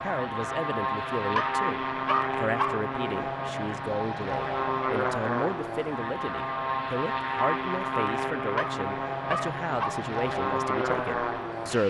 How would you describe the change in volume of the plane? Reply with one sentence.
The loudness of the plane stays about the same.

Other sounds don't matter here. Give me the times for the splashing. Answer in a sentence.
You can't hear the splashing here.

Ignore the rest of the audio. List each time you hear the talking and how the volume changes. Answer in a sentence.
The talking can be heard from 0.0 to 11.8 s, at a steady volume.